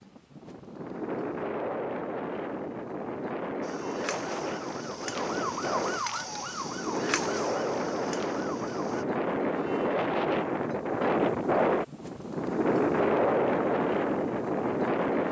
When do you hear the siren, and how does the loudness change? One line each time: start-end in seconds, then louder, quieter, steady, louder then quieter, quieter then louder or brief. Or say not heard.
3.6-9.1 louder then quieter.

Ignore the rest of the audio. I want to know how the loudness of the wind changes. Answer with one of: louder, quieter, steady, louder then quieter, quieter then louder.
louder.